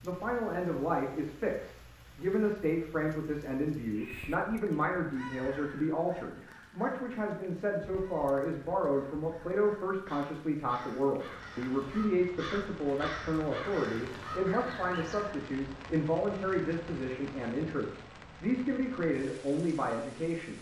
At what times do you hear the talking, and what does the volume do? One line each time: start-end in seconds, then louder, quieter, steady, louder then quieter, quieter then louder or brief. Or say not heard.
0.0-20.5 steady.